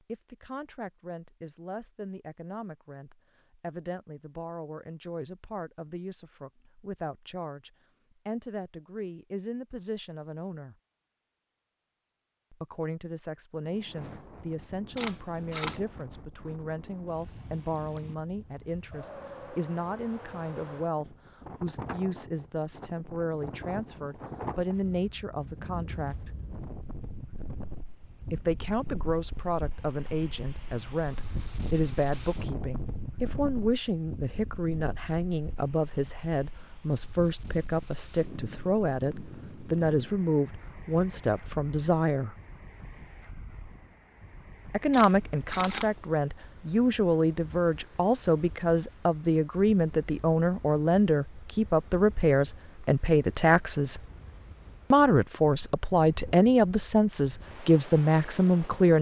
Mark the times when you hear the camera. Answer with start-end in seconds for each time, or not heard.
14.9-15.8, 44.9-46.0.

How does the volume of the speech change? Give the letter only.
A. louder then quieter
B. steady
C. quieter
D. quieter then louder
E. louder
E.